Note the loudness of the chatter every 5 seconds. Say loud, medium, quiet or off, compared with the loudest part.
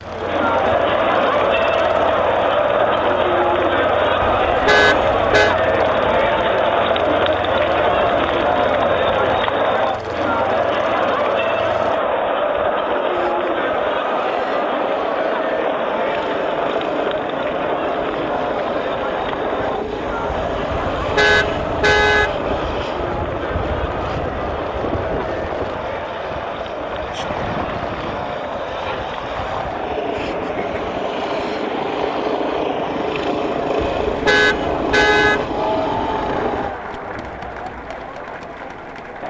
loud, loud, loud, medium, medium, medium, medium, medium.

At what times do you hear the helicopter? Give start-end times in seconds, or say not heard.
0.0-36.8.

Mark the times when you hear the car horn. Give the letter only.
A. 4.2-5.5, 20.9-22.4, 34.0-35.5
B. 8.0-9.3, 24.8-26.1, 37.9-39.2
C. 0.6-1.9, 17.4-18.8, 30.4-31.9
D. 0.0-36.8
A.